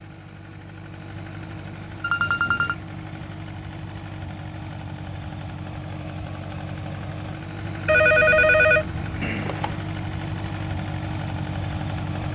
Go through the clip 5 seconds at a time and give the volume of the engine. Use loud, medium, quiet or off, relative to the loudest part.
medium, loud, loud.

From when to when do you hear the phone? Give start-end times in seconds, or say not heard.
2.0-2.8, 7.8-9.8.